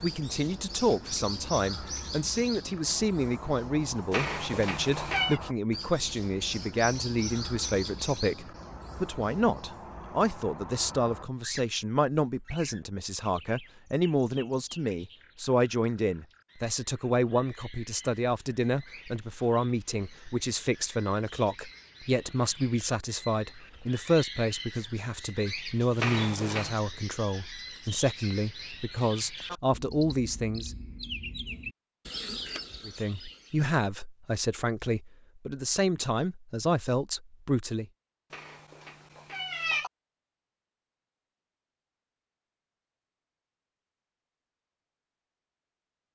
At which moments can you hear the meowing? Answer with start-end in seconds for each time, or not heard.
4.1-5.4, 25.9-26.8, 38.3-39.9.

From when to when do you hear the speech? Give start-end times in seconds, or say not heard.
0.0-30.8, 32.9-37.9.